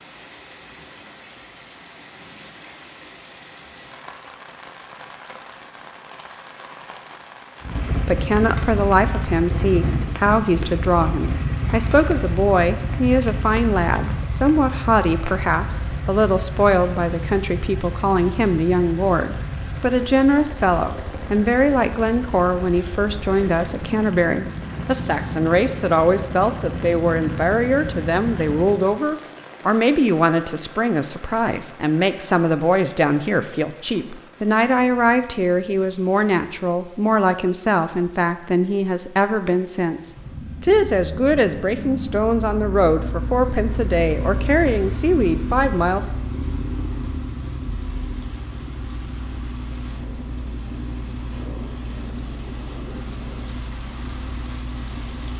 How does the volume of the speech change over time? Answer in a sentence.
The volume of the speech stays about the same.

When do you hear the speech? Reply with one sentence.
You can hear the speech from 7.9 to 46.0 s.